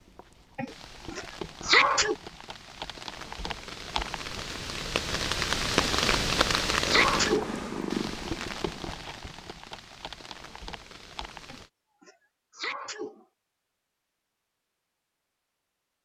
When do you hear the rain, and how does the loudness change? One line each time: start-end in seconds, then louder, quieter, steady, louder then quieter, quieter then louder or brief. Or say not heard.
0.0-11.7 louder then quieter.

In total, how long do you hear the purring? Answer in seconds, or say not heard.
2 s.